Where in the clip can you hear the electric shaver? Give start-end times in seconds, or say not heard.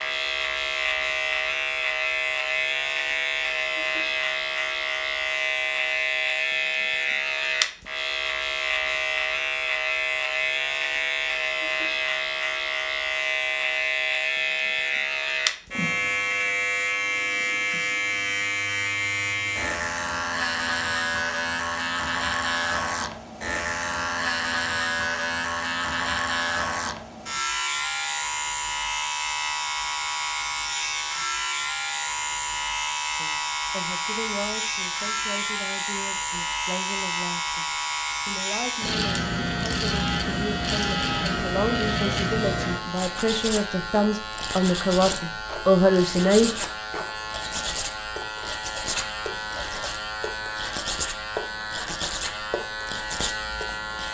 0.0-54.1.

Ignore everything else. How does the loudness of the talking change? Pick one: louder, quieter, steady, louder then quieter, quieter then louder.
louder.